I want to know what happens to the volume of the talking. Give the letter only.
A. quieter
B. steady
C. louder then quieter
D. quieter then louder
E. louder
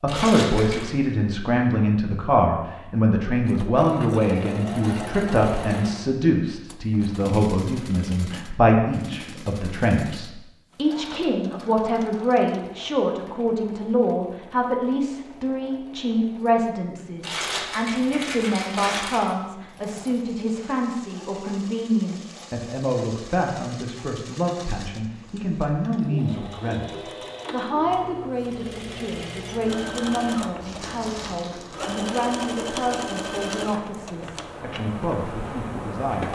A.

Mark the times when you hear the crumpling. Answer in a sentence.
The crumpling can be heard from 0.1 to 0.9 s, from 17.2 to 19.2 s and from 30.6 to 31.8 s.